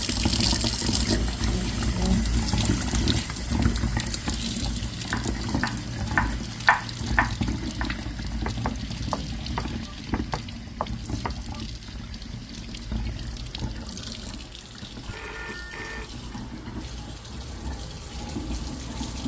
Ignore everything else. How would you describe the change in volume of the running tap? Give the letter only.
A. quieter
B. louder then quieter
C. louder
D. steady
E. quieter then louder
A.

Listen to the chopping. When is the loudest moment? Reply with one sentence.
The volume of the chopping peaks at 7 seconds.